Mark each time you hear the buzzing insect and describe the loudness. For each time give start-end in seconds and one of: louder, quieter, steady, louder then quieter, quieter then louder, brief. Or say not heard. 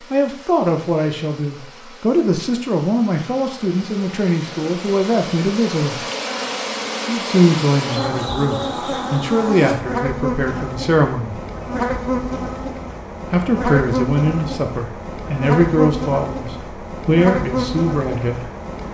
0.0-18.8 louder.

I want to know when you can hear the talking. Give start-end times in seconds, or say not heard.
0.0-6.0, 7.0-11.4, 13.3-18.5.